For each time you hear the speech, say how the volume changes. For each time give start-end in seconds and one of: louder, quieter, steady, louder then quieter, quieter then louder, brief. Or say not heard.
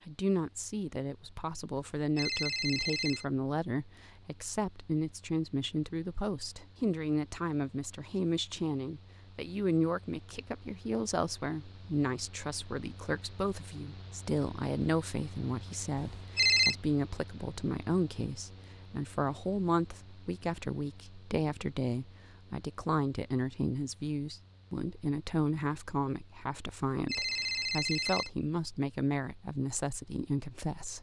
0.1-30.9 steady.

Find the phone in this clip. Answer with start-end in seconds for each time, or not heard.
1.9-3.2, 15.9-16.8, 26.9-28.3.